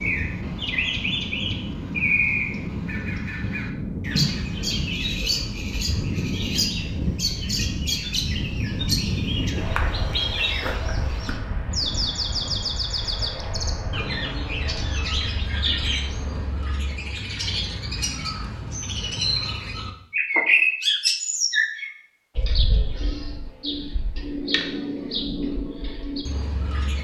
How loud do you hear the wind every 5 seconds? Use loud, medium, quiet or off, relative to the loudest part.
loud, loud, medium, medium, off, off.